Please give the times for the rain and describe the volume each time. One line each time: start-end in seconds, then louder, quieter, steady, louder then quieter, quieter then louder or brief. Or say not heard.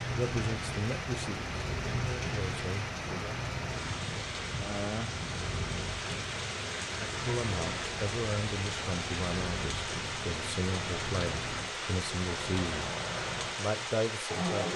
0.0-14.7 steady.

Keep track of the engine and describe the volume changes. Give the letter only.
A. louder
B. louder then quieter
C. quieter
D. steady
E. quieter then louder
D.